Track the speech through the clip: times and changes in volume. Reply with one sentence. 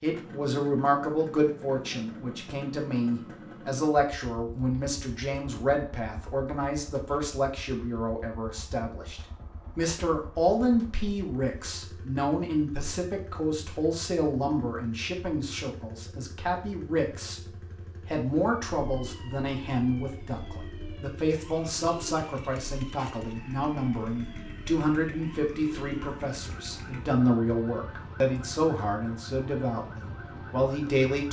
The speech can be heard from 0.0 to 31.2 s, at a steady volume.